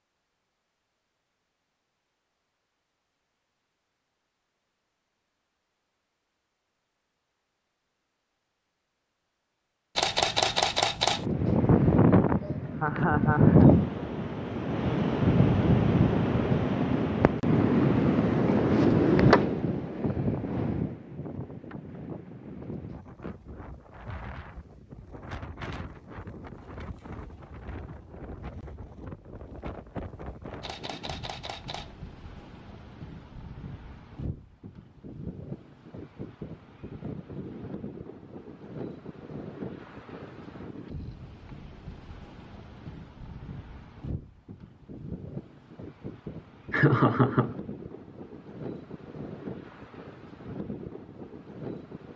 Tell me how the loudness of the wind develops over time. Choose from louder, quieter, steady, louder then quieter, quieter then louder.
quieter.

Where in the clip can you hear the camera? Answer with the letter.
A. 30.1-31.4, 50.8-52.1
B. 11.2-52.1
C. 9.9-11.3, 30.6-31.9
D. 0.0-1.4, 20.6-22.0
C.